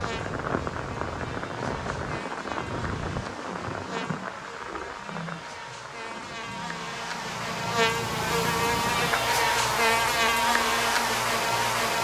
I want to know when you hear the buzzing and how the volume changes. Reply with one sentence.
You can hear the buzzing from 0.0 to 11.9 s, getting louder.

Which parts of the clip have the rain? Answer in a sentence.
You can hear the rain from 0.0 to 9.1 s.